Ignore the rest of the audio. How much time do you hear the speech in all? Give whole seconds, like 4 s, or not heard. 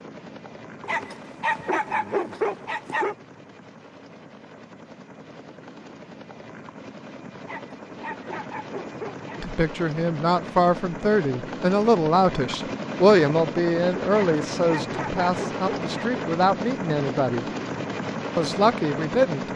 9 s.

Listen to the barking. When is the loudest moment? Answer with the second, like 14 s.
2 s.